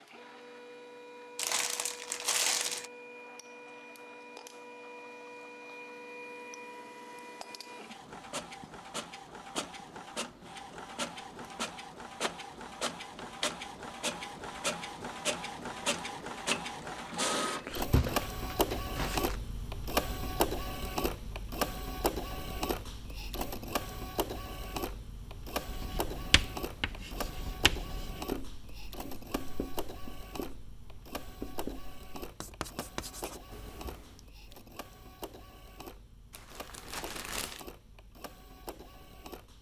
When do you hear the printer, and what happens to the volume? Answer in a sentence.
You can hear the printer from 0.0 to 39.5 s, getting louder then quieter.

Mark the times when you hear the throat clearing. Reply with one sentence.
You can't hear the throat clearing here.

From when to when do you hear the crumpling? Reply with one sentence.
You can hear the crumpling from 1.4 to 2.9 s, from 17.9 to 19.4 s and from 36.3 to 37.6 s.